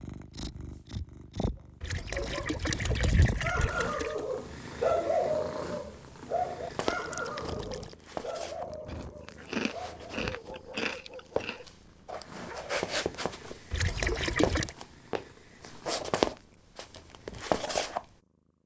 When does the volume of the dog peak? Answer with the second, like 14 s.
5 s.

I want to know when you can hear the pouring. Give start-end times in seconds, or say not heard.
1.8-4.2, 6.7-8.0, 13.7-14.8.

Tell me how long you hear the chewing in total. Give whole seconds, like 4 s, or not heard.
3 s.